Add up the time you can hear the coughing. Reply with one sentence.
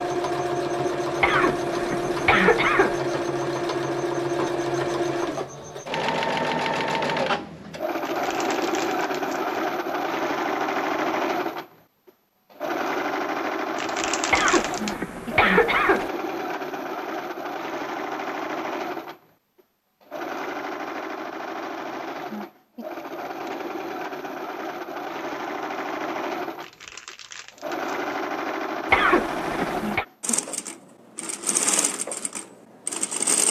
You can hear the coughing for 5 seconds altogether.